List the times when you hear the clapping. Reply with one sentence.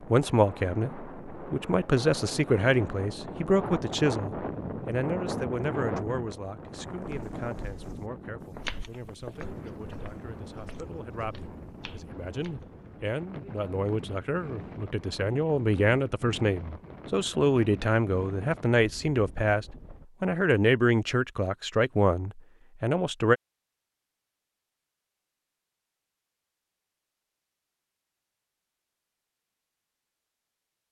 The clapping can't be heard in this clip.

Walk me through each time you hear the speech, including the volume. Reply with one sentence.
The speech can be heard from 0.0 to 23.4 s, getting quieter then louder.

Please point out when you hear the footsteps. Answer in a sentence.
The footsteps can be heard from 6.9 to 12.7 s.